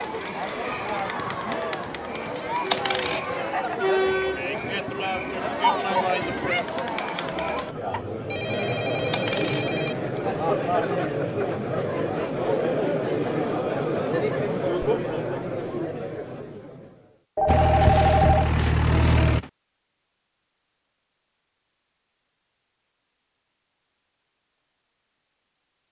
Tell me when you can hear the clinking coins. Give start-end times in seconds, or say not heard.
2.7-3.2, 9.1-9.7, 17.8-19.5.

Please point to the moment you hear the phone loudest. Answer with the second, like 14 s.
18 s.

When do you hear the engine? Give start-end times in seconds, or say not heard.
17.4-19.4.